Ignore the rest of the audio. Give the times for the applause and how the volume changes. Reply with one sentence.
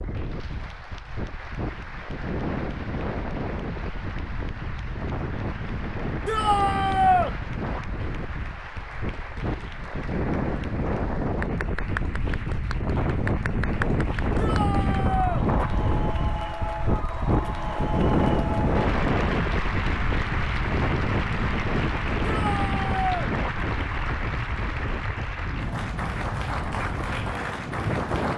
You can hear the applause from 0.0 to 28.3 s, getting louder.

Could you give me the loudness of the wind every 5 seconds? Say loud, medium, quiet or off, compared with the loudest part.
medium, medium, loud, loud, loud, medium.